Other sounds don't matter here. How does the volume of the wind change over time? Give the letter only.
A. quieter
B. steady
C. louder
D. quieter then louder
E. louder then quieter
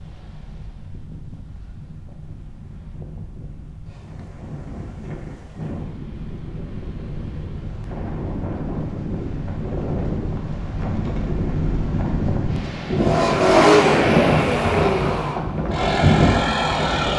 C.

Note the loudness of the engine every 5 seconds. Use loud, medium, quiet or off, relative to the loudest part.
off, off, loud, medium.